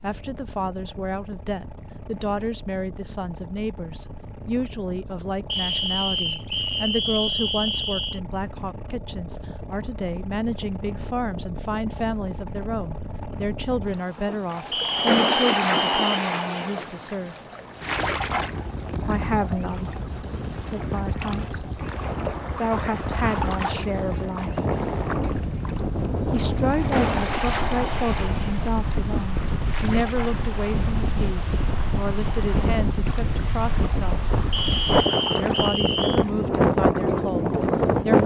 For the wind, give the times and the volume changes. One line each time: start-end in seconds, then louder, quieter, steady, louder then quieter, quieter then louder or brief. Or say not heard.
17.8-38.2 louder.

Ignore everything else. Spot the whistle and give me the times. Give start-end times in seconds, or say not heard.
5.5-8.2, 14.7-16.2, 34.5-36.2.